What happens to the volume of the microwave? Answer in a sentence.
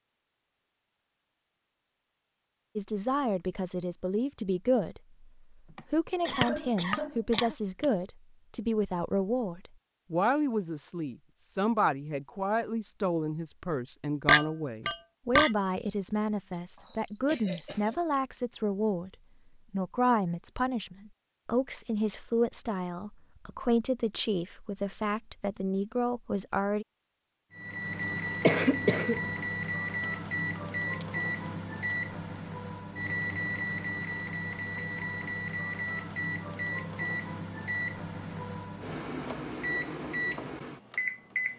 The loudness of the microwave stays about the same.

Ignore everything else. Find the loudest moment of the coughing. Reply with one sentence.
The loudest moment of the coughing is at 29 seconds.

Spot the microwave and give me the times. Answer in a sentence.
You can hear the microwave from 27.5 to 41.5 s.